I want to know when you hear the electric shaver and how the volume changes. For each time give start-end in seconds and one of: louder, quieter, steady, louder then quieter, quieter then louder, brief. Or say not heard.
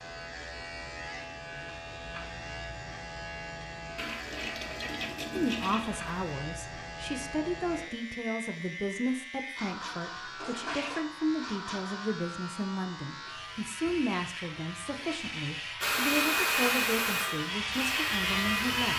0.0-18.9 louder.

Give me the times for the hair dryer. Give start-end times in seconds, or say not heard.
15.8-18.9.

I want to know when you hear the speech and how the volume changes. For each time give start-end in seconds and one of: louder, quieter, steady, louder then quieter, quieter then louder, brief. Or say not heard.
5.3-18.9 steady.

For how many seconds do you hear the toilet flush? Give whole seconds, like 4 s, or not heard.
3 s.